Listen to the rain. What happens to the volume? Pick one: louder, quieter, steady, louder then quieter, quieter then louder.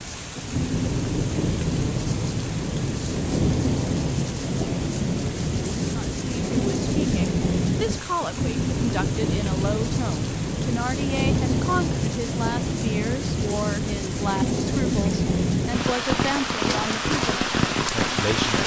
steady.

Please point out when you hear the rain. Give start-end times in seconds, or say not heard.
0.0-18.6.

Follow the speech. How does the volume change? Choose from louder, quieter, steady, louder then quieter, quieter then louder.
steady.